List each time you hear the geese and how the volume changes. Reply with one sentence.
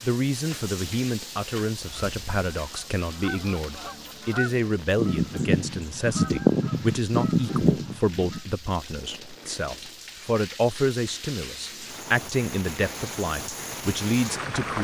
The geese can be heard from 1.8 to 8.4 s, getting louder.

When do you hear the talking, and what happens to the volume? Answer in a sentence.
The talking can be heard from 0.0 to 14.8 s, at a steady volume.